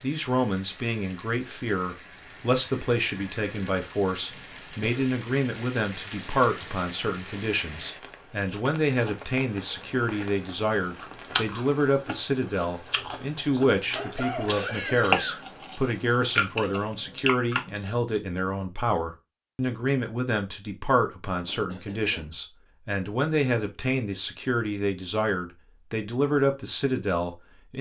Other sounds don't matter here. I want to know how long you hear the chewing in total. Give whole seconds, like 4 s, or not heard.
10 s.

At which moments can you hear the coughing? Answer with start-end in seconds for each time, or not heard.
4.3-5.2, 13.9-15.8, 21.4-22.3.